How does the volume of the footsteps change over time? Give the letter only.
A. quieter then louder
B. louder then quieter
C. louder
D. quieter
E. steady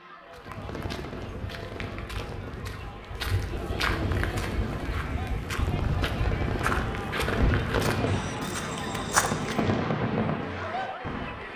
C.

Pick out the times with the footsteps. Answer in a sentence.
You can hear the footsteps from 0.3 to 9.7 s.